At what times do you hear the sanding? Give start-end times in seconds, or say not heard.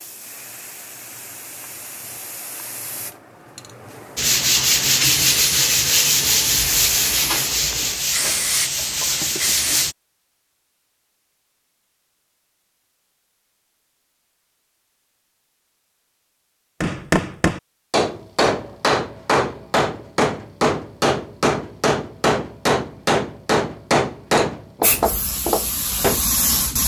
4.2-9.9.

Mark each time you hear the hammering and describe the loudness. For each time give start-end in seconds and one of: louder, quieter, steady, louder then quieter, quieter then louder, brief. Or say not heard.
16.8-26.2 steady.